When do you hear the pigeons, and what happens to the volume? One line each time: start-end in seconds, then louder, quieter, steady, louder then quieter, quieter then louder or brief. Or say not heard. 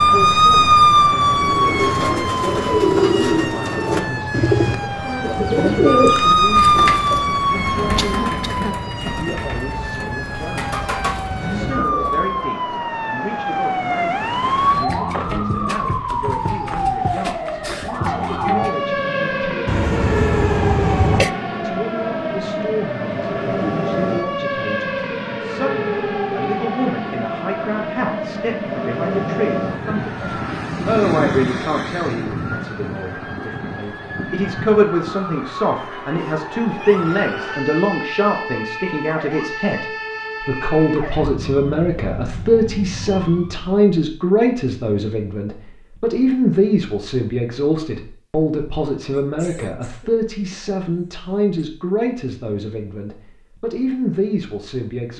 1.4-12.4 quieter.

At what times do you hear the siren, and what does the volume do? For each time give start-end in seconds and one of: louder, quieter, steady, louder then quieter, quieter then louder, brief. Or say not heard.
0.0-43.8 quieter.